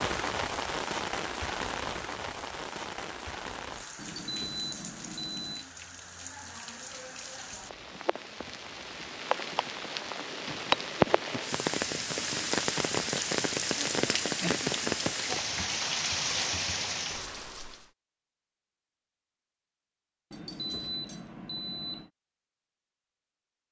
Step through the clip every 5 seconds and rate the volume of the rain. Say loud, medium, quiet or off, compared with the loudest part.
medium, medium, loud, loud, off.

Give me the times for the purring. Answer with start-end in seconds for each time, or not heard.
not heard.